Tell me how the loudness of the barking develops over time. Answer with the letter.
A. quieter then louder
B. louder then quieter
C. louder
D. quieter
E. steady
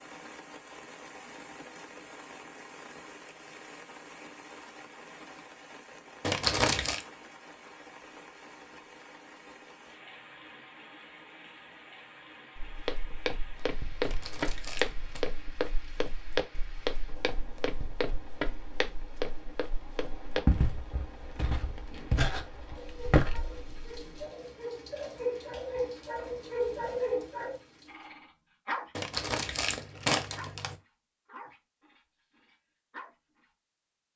B.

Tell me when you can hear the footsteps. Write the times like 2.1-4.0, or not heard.
12.6-24.2.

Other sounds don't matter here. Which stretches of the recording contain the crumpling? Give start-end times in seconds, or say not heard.
6.2-7.0, 14.0-15.2, 28.9-30.8.